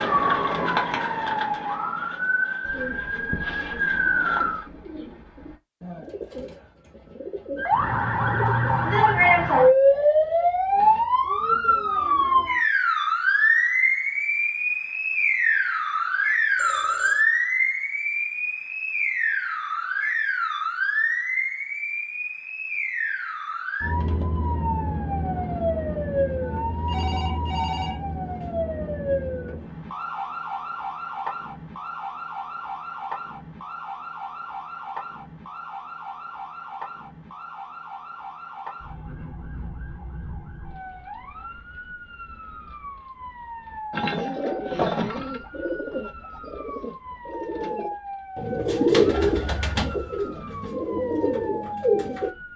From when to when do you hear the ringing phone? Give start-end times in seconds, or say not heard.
16.6-17.2, 26.9-28.5.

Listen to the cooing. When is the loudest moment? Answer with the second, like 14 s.
49 s.